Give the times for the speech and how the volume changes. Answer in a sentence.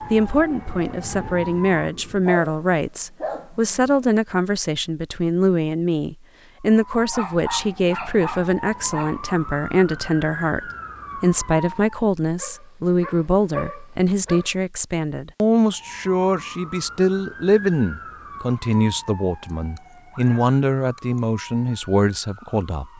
You can hear the speech from 0.0 to 22.9 s, at a steady volume.